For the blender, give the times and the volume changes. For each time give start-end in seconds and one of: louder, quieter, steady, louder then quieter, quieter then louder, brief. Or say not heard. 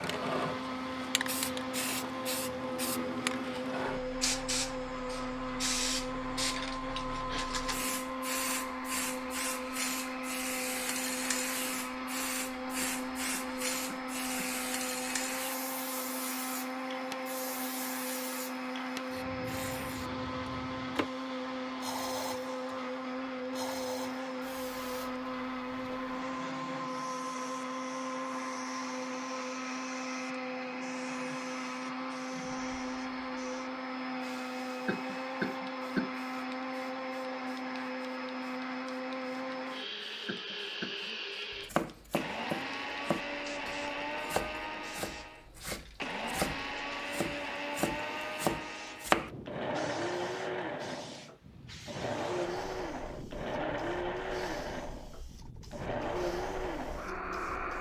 0.0-57.7 steady.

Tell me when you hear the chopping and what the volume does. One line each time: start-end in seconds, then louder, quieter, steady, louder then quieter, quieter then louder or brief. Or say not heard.
41.7-49.3 quieter then louder.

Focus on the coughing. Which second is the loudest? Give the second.
36 s.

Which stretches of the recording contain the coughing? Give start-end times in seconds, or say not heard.
12.8-14.6, 34.9-36.1, 40.2-41.1.